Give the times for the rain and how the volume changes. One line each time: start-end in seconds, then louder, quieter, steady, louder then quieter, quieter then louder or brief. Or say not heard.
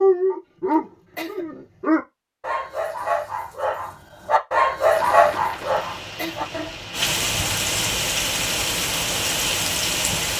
4.9-10.3 louder.